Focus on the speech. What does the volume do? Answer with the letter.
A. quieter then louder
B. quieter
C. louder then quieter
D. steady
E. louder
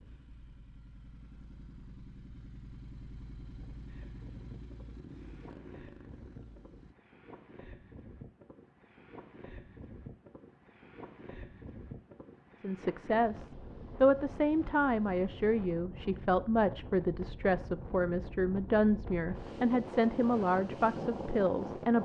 D.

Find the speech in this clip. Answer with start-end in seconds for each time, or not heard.
12.6-22.0.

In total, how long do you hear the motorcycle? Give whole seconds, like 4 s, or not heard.
7 s.